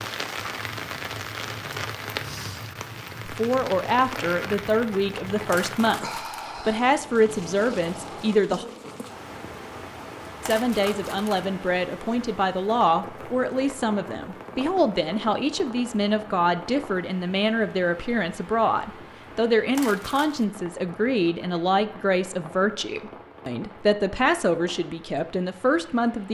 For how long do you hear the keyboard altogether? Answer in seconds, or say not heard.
not heard.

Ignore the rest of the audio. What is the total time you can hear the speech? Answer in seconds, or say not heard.
21 s.